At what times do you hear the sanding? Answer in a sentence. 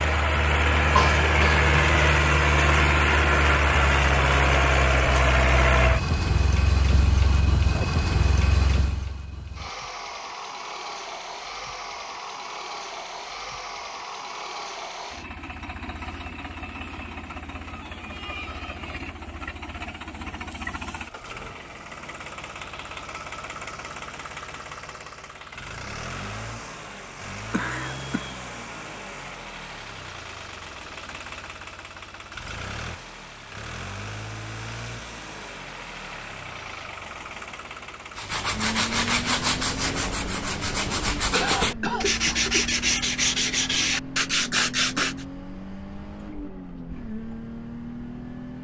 You can hear the sanding from 38.1 to 45.2 s.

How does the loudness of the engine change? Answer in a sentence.
The loudness of the engine goes down.